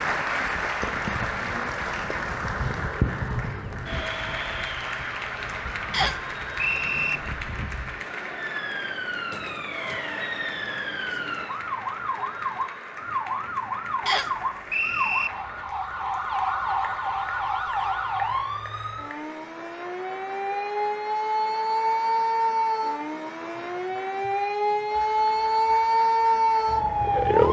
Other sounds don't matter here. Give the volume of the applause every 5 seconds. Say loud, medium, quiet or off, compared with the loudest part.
loud, medium, medium, quiet, quiet, quiet.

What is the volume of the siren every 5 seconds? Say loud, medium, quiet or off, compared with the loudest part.
quiet, quiet, medium, medium, medium, loud.